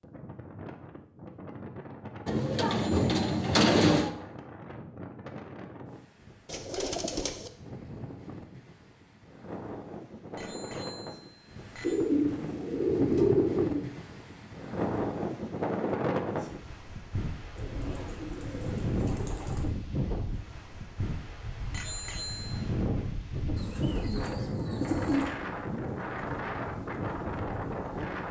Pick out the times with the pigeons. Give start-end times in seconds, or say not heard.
2.2-4.1, 6.5-7.5, 11.8-13.9, 17.6-19.7, 23.6-25.3.